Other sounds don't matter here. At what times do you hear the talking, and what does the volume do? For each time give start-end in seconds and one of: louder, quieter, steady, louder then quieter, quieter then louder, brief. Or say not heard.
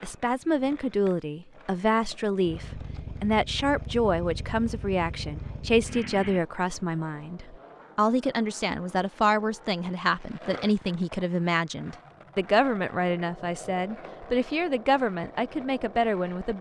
0.0-16.5 steady.